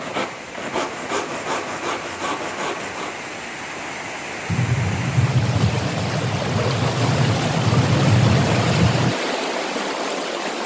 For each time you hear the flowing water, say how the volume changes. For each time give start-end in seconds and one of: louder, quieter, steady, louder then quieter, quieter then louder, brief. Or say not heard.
0.0-10.6 louder.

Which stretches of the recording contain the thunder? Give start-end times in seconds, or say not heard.
4.5-9.2.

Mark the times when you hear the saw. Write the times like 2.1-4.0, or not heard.
0.0-3.3.